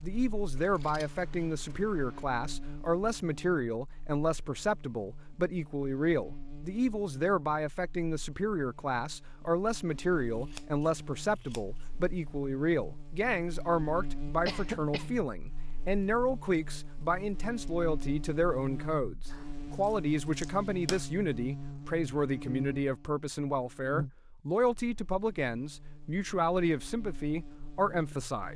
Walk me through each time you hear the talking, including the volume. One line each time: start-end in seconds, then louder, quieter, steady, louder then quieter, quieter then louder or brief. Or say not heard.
0.0-28.5 steady.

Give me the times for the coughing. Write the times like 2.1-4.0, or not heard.
14.4-15.1.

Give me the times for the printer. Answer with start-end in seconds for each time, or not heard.
not heard.